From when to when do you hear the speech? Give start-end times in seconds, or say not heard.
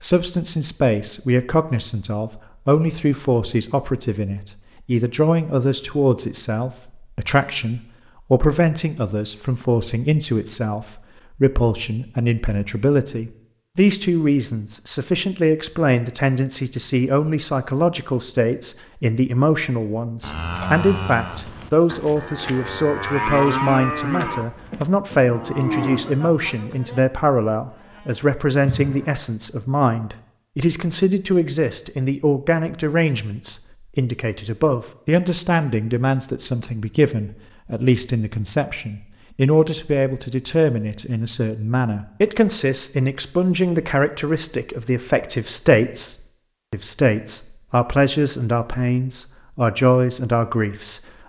0.0-51.0.